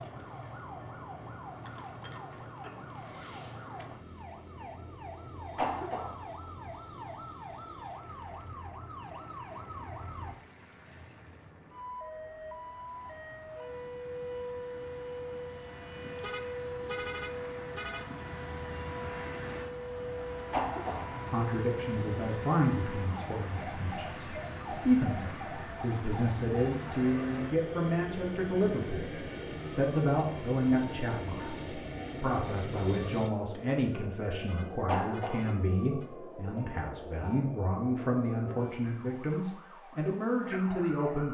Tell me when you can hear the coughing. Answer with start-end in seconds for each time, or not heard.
5.5-6.1, 20.5-21.1, 34.9-35.4.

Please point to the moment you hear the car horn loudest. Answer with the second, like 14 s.
17 s.